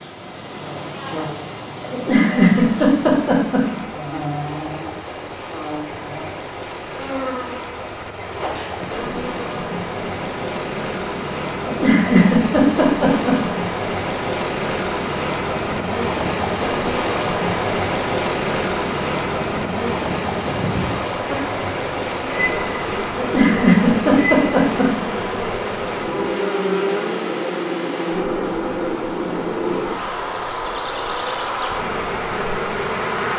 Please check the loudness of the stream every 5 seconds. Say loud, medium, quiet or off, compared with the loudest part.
medium, medium, loud, loud, loud, medium, medium.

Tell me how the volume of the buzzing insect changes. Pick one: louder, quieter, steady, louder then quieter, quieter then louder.
louder.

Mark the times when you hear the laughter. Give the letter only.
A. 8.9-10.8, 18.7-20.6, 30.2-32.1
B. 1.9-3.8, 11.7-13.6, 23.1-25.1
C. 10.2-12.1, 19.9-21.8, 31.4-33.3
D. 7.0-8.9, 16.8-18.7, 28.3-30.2
B.